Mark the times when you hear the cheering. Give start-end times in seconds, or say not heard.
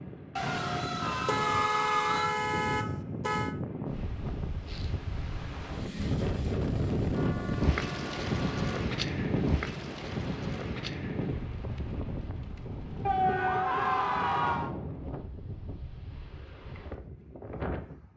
0.3-2.3, 13.1-14.7.